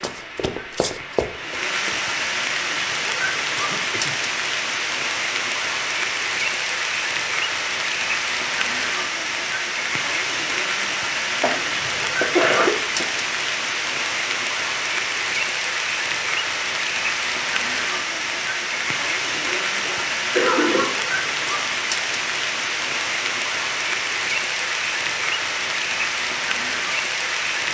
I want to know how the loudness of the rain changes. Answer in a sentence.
The loudness of the rain stays about the same.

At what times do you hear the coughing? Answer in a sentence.
The coughing can be heard from 3.5 to 4.2 s, from 11.4 to 13.1 s and from 19.4 to 20.9 s.